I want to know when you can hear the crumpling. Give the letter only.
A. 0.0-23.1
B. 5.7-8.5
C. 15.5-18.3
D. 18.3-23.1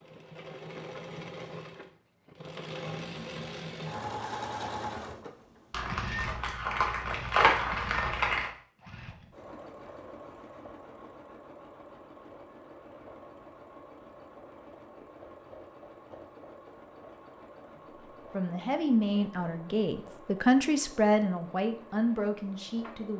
B.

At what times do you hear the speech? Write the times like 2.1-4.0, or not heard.
18.3-23.1.